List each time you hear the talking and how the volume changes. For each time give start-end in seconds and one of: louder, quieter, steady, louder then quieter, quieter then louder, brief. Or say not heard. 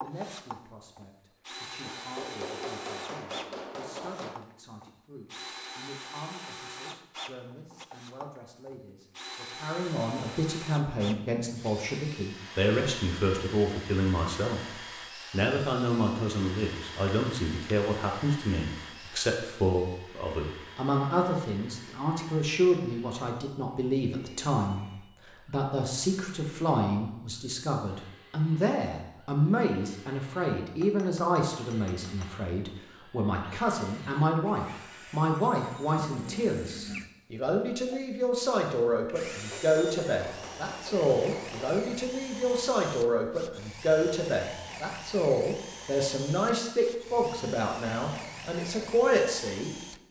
0.0-49.8 louder.